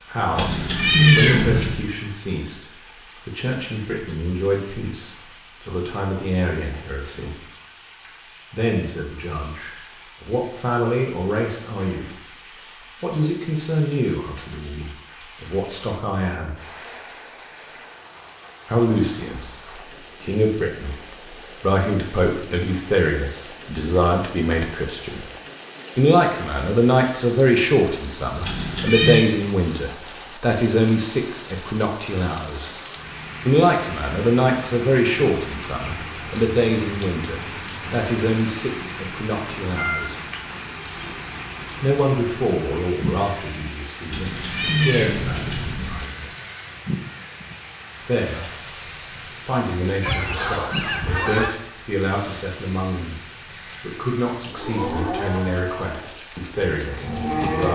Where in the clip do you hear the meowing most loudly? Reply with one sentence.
The loudest moment of the meowing is at 1 second.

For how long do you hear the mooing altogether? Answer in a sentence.
You can hear the mooing for 3 seconds altogether.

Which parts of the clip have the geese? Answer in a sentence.
You can hear the geese from 50.0 to 51.5 s.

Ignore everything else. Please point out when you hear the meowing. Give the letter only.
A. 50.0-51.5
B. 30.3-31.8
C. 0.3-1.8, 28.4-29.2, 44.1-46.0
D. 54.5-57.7
C.